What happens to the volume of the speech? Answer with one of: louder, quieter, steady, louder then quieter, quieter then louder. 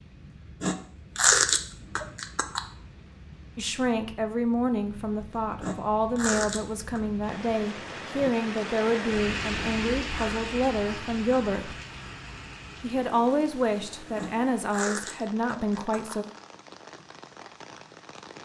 steady.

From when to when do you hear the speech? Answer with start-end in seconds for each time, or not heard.
3.5-11.8, 12.8-16.2.